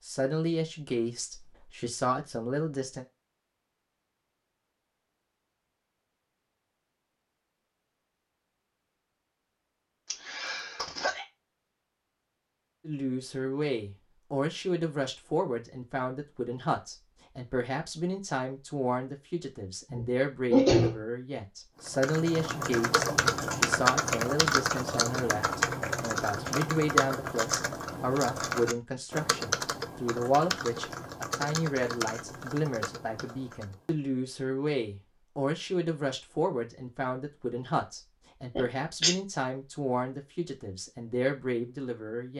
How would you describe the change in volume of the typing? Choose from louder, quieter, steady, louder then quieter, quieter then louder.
quieter.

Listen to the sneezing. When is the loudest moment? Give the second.
21 s.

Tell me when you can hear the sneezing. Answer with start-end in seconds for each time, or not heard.
10.1-11.2, 19.9-21.0, 38.5-39.1.